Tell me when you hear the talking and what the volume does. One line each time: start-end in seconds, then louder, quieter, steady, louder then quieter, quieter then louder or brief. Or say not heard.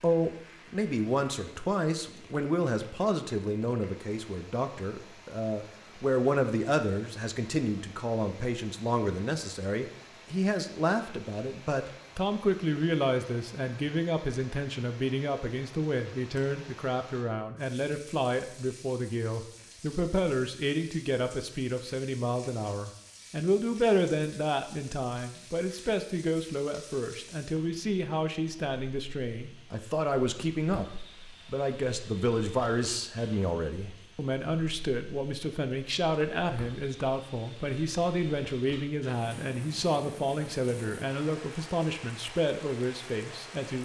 0.0-43.8 steady.